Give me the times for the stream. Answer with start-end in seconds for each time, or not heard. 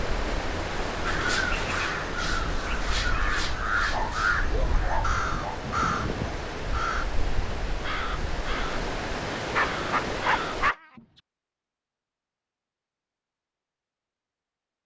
0.0-10.7.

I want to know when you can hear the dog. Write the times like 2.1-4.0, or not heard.
3.9-5.6, 9.3-10.8.